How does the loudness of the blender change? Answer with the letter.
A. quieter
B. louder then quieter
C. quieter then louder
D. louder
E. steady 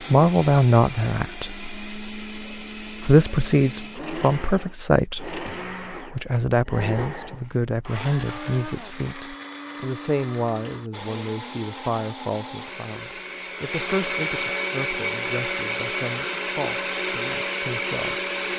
D.